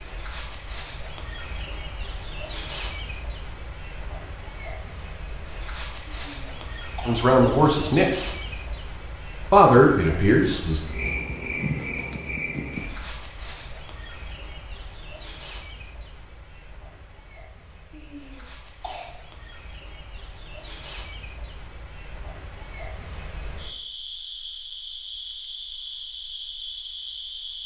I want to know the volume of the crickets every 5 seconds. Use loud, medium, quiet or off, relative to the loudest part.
loud, loud, loud, medium, loud, loud.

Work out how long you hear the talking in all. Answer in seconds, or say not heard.
2 s.